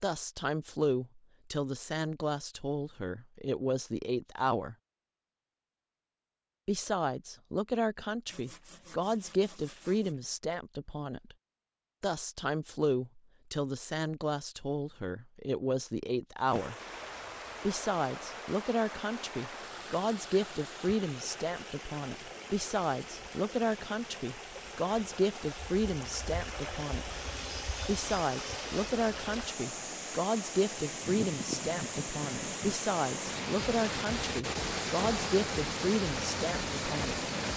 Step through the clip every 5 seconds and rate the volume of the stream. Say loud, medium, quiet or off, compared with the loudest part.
off, off, off, medium, medium, medium, loud, loud.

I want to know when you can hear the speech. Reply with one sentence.
The speech can be heard from 0.0 to 4.8 s, from 6.7 to 11.3 s, from 12.0 to 16.8 s, from 17.6 to 27.1 s and from 27.9 to 37.3 s.